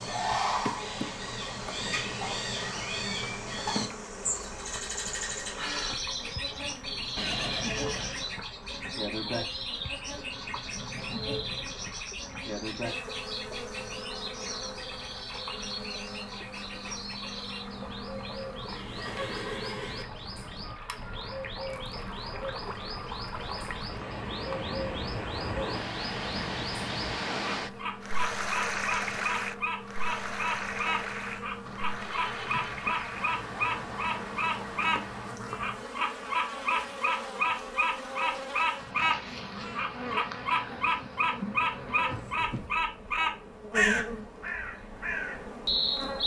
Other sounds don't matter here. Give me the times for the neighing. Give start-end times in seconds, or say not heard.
7.2-8.2, 18.6-20.1, 31.6-32.7.